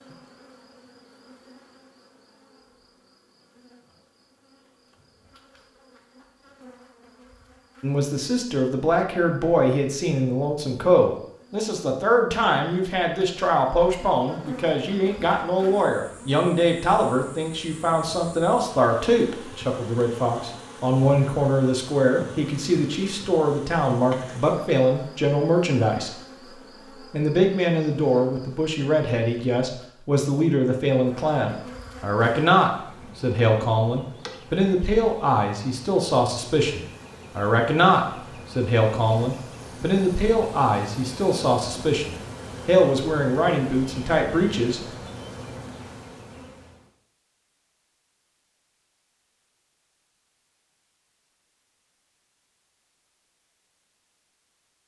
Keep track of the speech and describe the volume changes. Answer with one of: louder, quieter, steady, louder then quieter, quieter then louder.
steady.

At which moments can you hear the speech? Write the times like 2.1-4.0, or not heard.
7.8-26.2, 27.0-44.8.